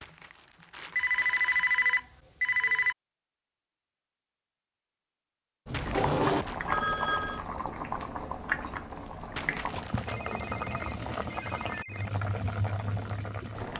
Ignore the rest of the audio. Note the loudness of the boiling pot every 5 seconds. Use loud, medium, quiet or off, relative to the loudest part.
off, loud, loud.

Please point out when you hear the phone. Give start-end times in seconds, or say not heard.
0.9-3.0, 6.0-7.5, 10.1-12.1.